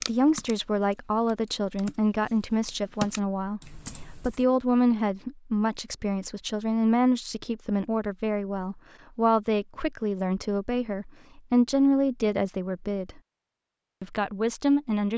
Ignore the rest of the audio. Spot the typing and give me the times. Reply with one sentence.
You can hear the typing from 0.0 to 4.4 s.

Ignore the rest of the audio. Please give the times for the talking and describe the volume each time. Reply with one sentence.
You can hear the talking from 0.1 to 13.2 s, at a steady volume; and briefly from 14.0 to 15.1 s.